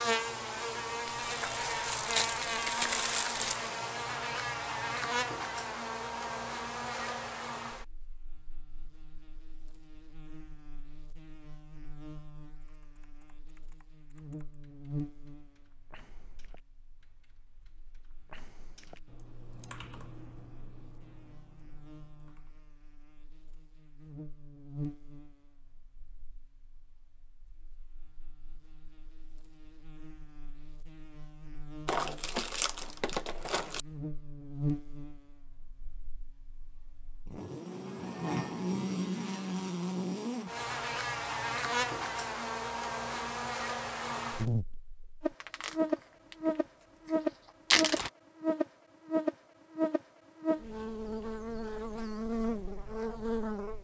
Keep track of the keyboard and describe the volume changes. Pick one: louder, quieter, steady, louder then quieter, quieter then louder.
louder then quieter.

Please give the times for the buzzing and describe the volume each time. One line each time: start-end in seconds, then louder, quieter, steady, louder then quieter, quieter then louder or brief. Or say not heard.
0.0-53.7 quieter then louder.